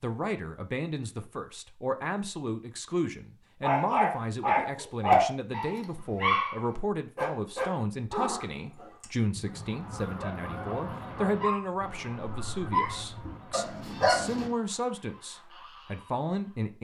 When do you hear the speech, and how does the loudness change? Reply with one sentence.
You can hear the speech from 0.0 to 16.7 s, at a steady volume.